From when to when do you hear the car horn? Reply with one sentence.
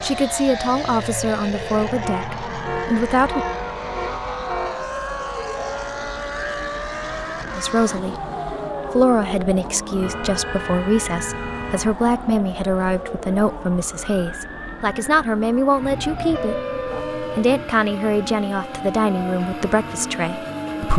The car horn can be heard from 2.0 to 4.8 s, from 10.0 to 12.0 s and from 15.8 to 17.6 s.